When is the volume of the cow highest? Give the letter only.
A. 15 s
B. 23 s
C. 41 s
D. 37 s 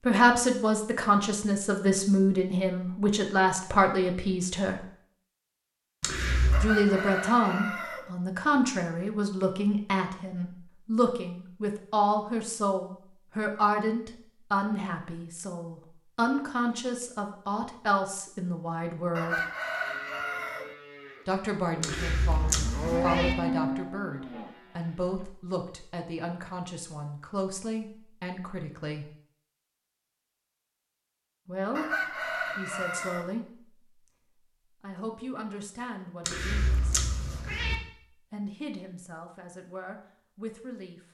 B.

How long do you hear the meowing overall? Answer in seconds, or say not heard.
4 s.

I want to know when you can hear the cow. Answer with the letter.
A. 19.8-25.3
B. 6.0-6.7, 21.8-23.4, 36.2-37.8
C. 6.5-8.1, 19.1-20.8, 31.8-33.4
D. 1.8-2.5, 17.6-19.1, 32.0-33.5
A.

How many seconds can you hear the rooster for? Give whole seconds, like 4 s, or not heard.
5 s.